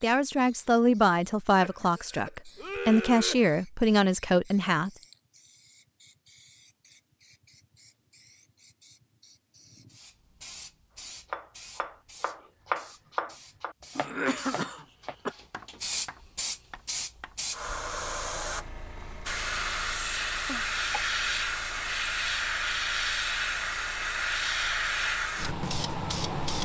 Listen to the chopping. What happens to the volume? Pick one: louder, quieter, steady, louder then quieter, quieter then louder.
louder then quieter.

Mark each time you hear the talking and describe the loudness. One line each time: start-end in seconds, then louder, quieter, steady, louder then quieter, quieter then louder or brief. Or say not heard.
0.0-4.9 quieter then louder.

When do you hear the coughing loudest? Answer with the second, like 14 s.
14 s.